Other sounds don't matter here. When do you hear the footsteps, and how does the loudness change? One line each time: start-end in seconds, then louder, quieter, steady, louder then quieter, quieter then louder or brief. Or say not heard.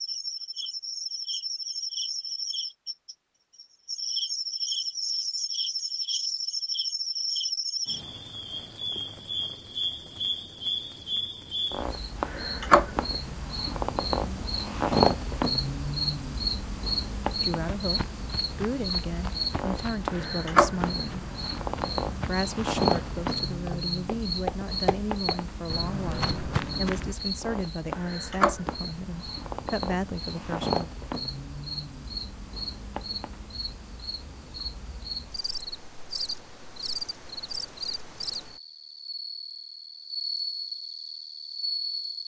17.8-27.1 louder.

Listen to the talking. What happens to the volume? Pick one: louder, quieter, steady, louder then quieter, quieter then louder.
steady.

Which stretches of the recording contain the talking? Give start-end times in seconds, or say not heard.
17.4-21.2, 22.2-30.9.